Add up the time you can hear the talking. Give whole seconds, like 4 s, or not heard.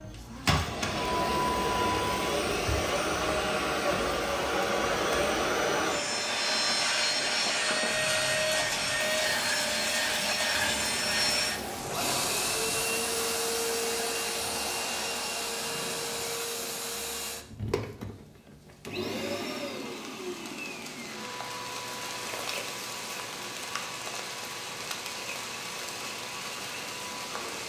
not heard.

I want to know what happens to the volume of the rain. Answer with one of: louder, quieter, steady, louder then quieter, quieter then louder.
quieter then louder.